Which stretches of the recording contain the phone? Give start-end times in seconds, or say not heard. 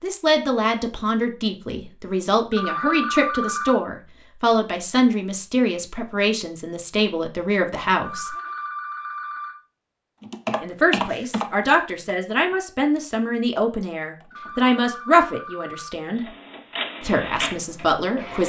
2.5-3.8, 8.0-9.6, 14.3-15.9.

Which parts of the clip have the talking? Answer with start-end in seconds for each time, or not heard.
0.0-8.3, 10.6-16.2, 17.0-18.4.